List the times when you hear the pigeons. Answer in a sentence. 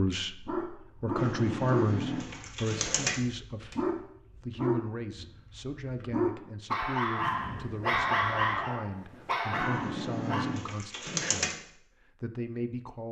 You can hear the pigeons from 1.1 to 3.2 s and from 9.5 to 11.6 s.